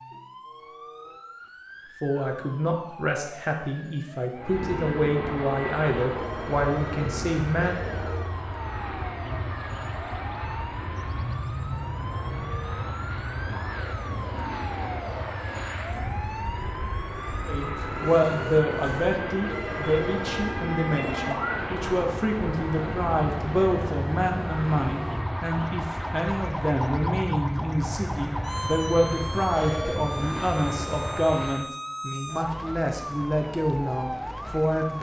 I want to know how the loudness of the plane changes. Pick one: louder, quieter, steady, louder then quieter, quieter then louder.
steady.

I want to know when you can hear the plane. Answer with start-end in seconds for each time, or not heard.
4.3-31.7.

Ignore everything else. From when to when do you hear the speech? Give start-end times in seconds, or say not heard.
2.0-7.8, 17.4-34.9.